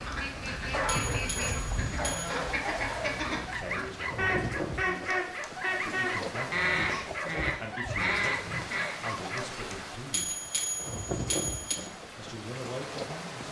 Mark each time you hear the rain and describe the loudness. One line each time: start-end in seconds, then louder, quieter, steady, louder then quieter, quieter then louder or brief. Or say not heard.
0.0-13.4 steady.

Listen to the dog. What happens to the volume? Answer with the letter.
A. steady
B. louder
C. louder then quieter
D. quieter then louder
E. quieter
A.